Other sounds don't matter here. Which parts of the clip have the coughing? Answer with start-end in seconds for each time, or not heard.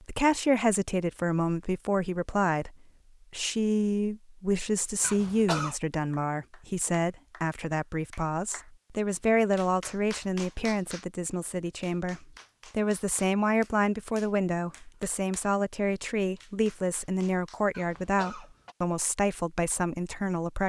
5.0-5.8, 17.7-18.8.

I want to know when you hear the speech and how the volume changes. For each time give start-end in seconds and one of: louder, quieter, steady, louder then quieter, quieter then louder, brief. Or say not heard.
0.0-20.6 steady.